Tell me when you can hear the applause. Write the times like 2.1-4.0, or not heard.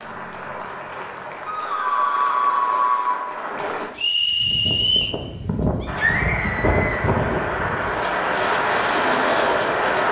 0.0-3.9, 5.8-10.0.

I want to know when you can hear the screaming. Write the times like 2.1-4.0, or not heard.
1.4-3.3, 5.8-7.1.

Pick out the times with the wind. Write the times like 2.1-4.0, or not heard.
4.2-10.0.